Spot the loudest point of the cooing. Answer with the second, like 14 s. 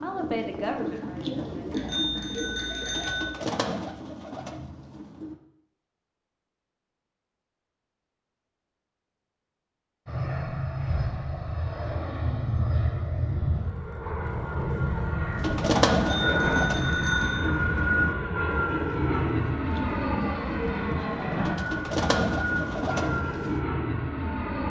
16 s.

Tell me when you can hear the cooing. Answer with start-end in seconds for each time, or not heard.
0.0-5.3, 15.3-23.6.